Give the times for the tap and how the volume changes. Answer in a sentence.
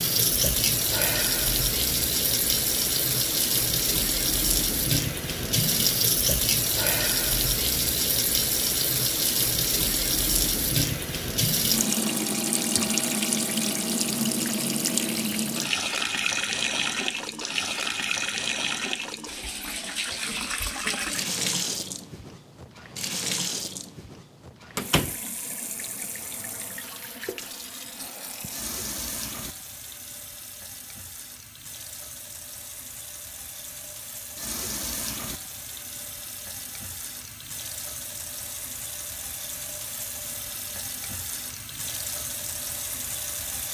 You can hear the tap from 0.0 to 43.6 s, getting quieter.